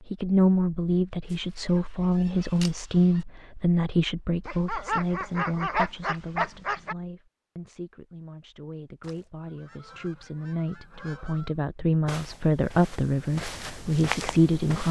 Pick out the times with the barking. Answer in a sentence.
You can hear the barking from 4.5 to 7.0 s.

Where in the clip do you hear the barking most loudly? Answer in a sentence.
The loudest moment of the barking is at 6 seconds.